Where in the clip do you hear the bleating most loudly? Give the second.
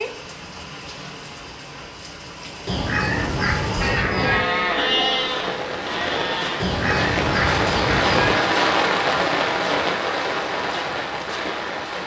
5 s.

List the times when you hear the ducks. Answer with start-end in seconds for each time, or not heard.
2.6-4.4, 6.6-8.3.